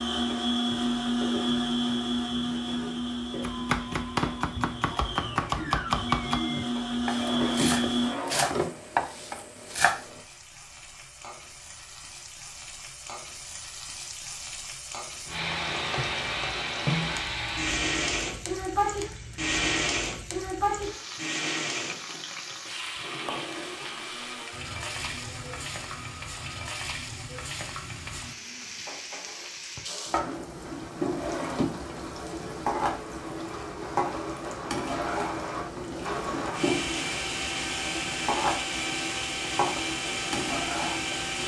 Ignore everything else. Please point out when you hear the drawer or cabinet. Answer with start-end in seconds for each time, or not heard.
7.1-8.8, 31.1-31.9.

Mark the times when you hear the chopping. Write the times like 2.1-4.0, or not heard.
3.4-10.2.